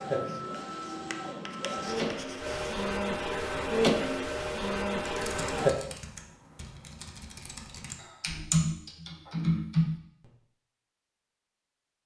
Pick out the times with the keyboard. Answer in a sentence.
The keyboard can be heard from 5.0 to 10.3 s.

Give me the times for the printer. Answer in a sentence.
The printer can be heard from 0.0 to 5.7 s.